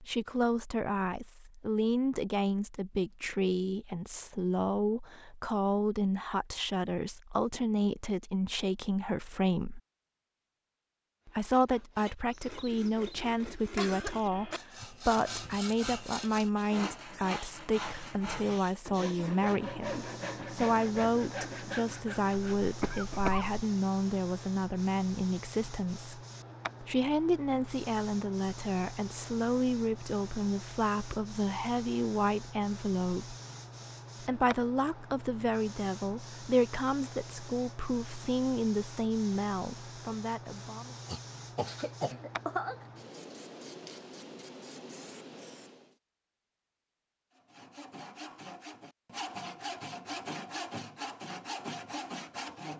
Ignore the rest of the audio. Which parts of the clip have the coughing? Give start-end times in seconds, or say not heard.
13.8-14.6, 22.6-23.5, 41.0-42.8.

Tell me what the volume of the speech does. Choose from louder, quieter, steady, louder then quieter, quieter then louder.
steady.